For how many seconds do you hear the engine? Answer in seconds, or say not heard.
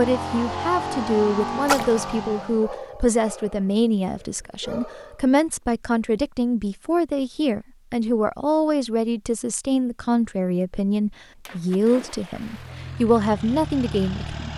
5 s.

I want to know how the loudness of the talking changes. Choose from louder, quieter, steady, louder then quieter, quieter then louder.
steady.